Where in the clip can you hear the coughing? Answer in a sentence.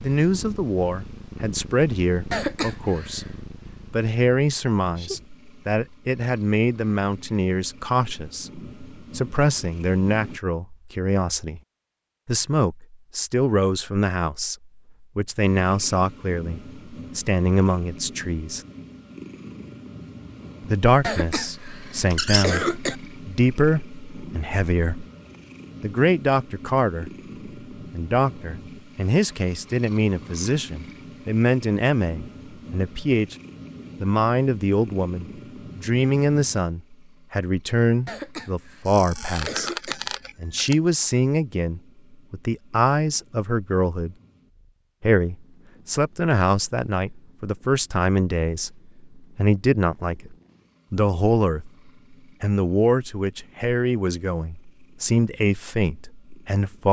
The coughing can be heard from 2.3 to 3.2 s, from 21.0 to 22.9 s and from 38.0 to 40.0 s.